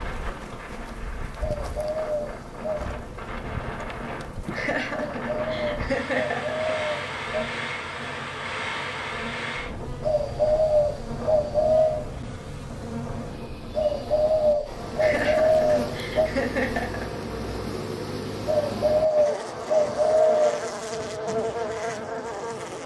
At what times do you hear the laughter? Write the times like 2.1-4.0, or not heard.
4.5-6.8, 14.9-17.2.